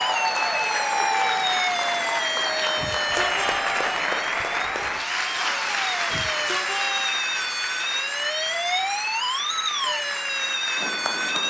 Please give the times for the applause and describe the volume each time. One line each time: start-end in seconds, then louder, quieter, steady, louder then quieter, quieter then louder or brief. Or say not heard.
0.0-11.4 quieter.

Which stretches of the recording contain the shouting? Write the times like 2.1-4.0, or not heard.
2.8-4.2, 6.1-7.2.